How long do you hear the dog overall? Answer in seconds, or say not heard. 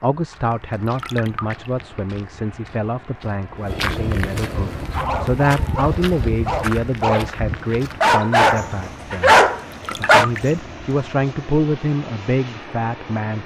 5 s.